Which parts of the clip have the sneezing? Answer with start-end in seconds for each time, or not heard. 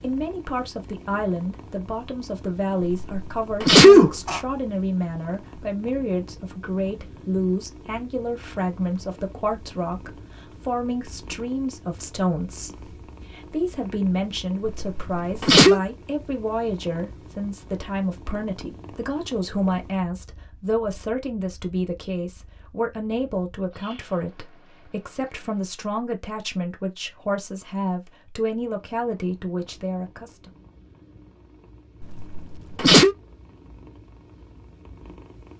2.9-4.4, 14.7-15.8, 32.0-33.1.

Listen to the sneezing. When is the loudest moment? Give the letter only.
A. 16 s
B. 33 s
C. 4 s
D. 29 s
C.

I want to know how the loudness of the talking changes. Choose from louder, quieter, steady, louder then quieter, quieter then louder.
steady.